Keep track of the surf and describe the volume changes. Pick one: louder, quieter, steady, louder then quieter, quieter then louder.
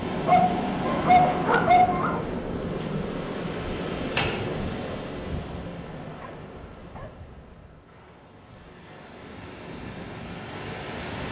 quieter then louder.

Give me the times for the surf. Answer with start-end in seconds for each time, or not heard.
0.0-11.2.